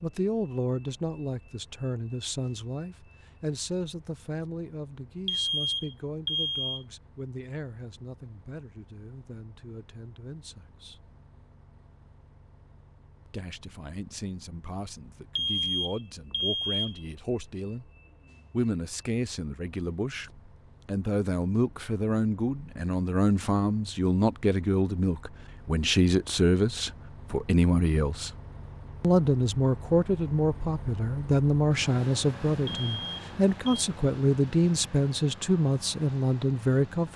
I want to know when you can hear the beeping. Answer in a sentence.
The beeping can be heard from 5.2 to 6.8 s, from 15.3 to 17.0 s and from 32.6 to 33.9 s.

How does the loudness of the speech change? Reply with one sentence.
The loudness of the speech goes down, then up.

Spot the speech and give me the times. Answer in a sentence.
The speech can be heard from 0.0 to 11.1 s, from 13.2 to 17.9 s, from 18.5 to 28.3 s and from 29.0 to 37.1 s.